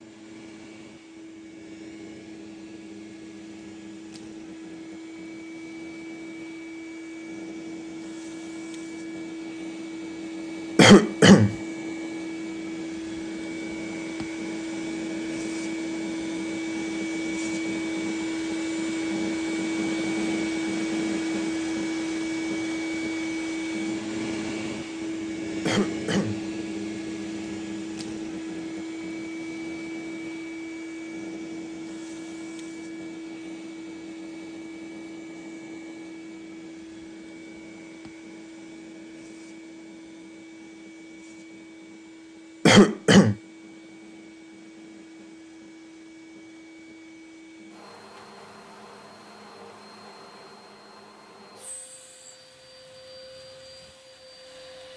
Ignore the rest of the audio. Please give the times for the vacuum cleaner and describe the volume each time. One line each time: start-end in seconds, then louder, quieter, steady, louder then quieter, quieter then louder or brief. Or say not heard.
0.0-54.9 louder then quieter.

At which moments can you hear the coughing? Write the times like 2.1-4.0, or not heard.
10.8-11.6, 25.6-26.4, 42.6-43.4.